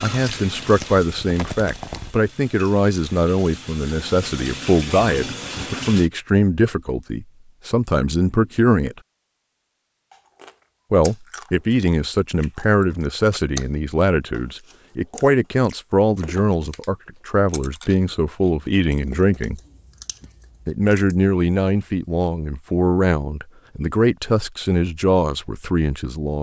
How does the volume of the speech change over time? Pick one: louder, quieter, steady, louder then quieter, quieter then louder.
steady.